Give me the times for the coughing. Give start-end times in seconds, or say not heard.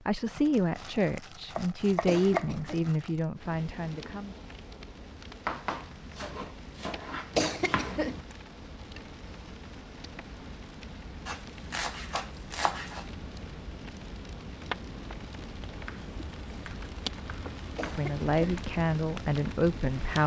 2.0-2.8, 7.3-8.2, 17.8-18.6.